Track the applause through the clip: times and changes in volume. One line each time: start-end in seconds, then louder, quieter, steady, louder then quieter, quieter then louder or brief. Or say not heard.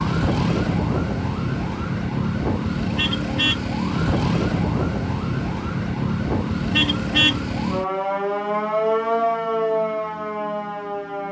not heard.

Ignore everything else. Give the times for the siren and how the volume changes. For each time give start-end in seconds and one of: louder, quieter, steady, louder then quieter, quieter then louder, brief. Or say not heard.
0.0-11.2 steady.